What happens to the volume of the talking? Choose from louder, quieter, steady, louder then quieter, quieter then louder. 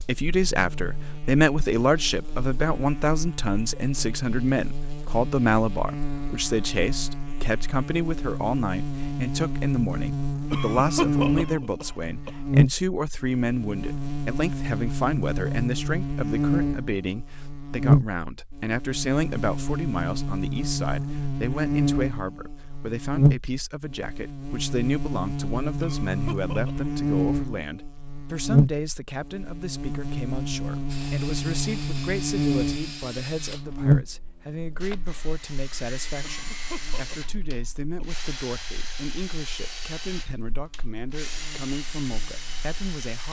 quieter.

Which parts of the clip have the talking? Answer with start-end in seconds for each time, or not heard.
0.0-43.2.